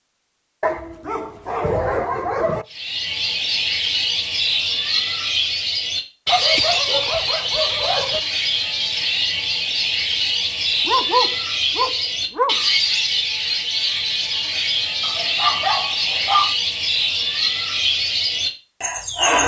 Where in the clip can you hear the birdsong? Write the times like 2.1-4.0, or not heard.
2.7-19.4.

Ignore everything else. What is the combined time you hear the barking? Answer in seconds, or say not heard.
7 s.